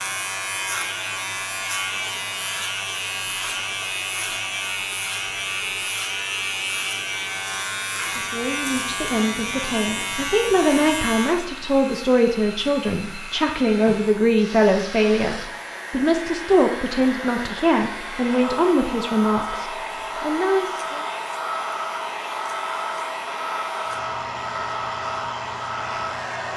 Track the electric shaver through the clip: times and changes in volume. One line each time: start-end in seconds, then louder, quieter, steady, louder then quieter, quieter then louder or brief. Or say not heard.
0.0-26.5 quieter.